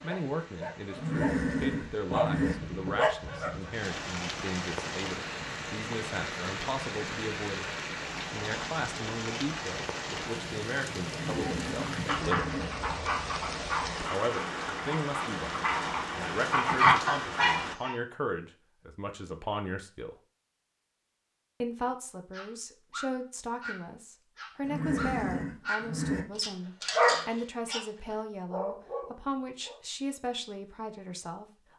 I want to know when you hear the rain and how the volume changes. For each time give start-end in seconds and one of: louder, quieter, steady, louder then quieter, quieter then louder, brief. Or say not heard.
0.0-17.8 louder.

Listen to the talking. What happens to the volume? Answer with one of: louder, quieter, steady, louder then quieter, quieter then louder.
steady.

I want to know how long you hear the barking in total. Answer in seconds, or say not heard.
17 s.